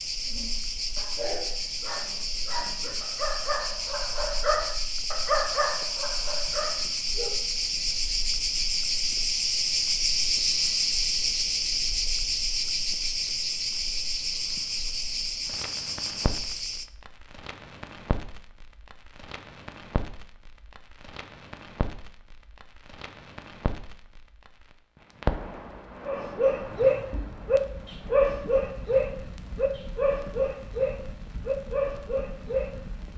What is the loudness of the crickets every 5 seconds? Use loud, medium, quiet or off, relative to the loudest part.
medium, loud, loud, medium, off, off, off.